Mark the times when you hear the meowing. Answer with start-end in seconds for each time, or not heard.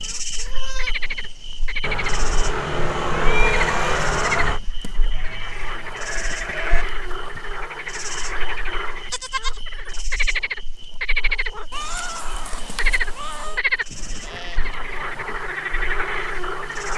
1.8-4.6, 11.7-13.6.